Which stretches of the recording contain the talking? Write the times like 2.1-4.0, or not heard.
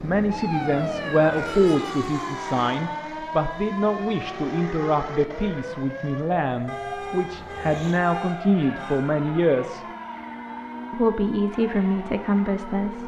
0.0-9.8, 10.9-13.0.